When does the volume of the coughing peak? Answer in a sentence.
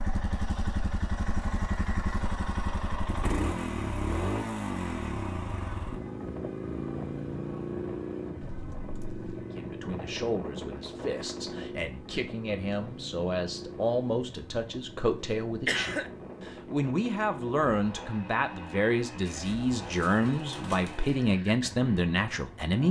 The volume of the coughing peaks at 16 seconds.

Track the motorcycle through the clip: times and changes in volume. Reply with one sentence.
The motorcycle can be heard from 0.0 to 22.8 s, getting quieter.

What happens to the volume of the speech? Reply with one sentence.
The loudness of the speech goes up.